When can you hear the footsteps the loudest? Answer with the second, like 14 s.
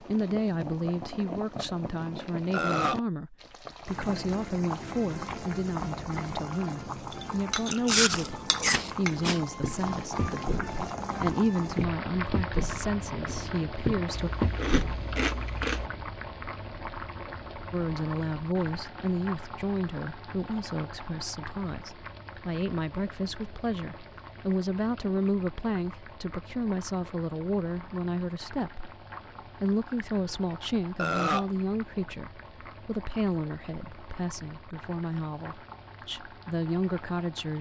15 s.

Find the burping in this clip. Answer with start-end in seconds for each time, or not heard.
2.5-3.0, 30.9-31.5.